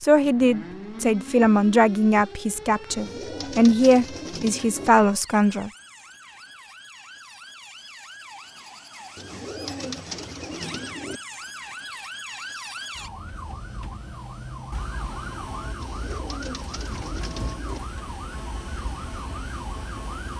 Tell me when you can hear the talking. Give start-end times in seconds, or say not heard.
0.0-5.7.